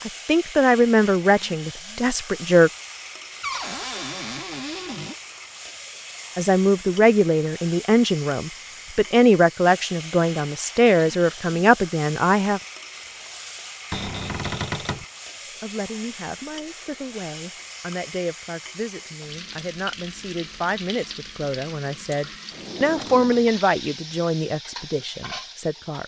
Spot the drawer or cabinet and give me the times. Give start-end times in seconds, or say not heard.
3.4-5.2, 13.9-15.1, 22.5-23.6.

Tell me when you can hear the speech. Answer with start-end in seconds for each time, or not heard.
0.0-2.7, 6.3-12.6, 15.4-26.0.